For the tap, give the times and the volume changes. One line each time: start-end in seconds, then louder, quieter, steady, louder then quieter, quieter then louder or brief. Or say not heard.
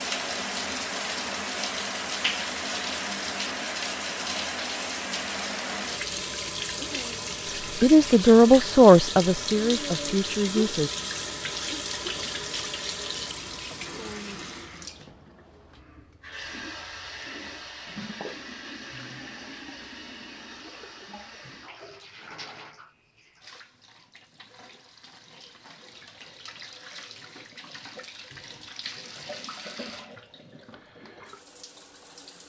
0.0-32.4 quieter.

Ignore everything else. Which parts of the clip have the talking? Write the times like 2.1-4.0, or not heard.
7.8-10.9.